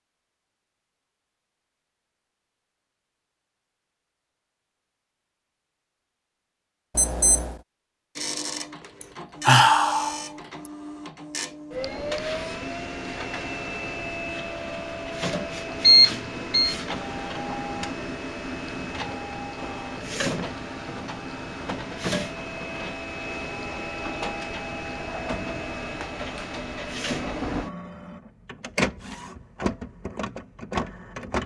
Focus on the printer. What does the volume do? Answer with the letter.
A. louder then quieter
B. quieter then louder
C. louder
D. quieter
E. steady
E.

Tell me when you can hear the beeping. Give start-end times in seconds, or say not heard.
7.0-7.5, 15.8-16.8.